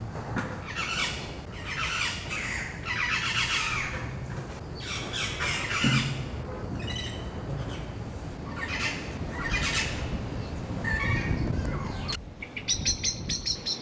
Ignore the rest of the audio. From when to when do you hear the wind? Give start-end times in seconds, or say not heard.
3.6-13.7.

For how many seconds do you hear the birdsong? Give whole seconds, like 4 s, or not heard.
14 s.